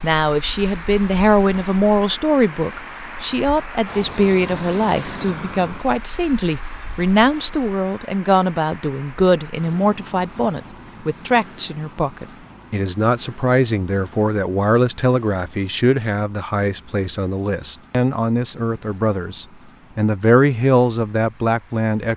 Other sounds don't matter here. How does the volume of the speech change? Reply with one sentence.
The loudness of the speech stays about the same.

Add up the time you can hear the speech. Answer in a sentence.
You can hear the speech for 22 seconds altogether.